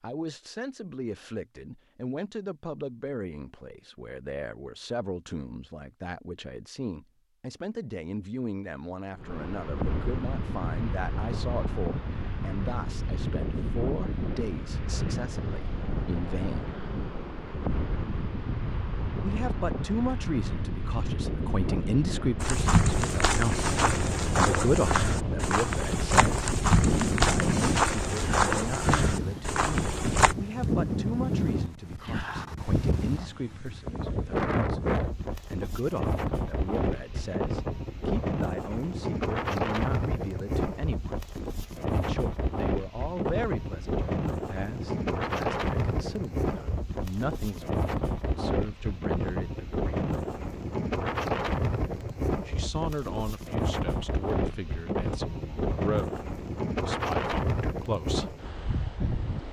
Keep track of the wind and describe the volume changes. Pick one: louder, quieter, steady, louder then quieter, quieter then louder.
steady.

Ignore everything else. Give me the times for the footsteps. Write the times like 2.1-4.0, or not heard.
22.4-30.4.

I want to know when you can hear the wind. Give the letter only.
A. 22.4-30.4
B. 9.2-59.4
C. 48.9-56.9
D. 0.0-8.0
B.